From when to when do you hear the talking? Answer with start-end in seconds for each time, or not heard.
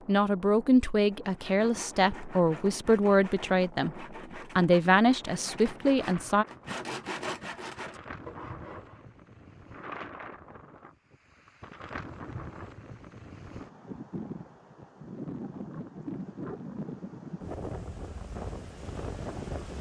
0.1-6.5.